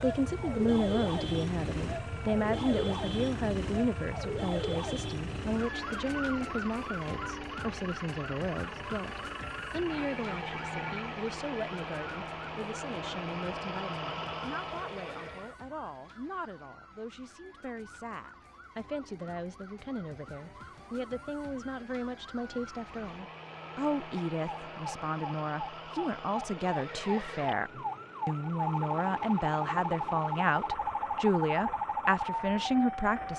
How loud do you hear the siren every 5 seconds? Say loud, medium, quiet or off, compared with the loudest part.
loud, medium, quiet, quiet, quiet, loud, loud.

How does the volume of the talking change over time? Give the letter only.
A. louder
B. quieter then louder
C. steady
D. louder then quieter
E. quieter
B.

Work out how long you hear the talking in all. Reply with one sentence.
You can hear the talking for 33 seconds altogether.